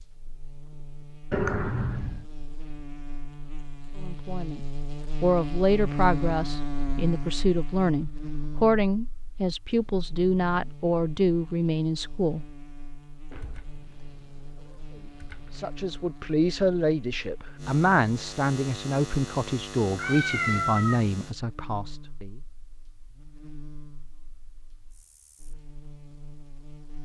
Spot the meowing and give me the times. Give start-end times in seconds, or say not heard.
1.3-2.2, 13.3-15.7, 19.9-21.1.